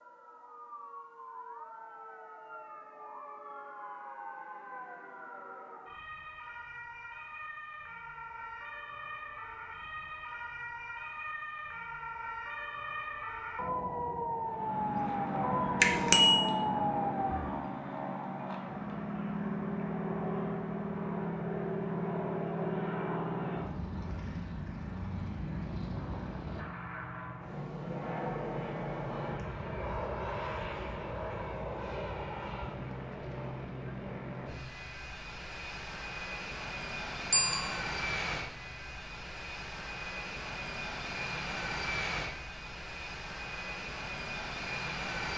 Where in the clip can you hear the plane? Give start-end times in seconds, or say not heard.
14.4-45.3.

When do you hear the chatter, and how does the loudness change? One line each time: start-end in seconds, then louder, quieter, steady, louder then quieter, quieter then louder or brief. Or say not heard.
not heard.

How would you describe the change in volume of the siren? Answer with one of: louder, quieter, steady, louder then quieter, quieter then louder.
louder.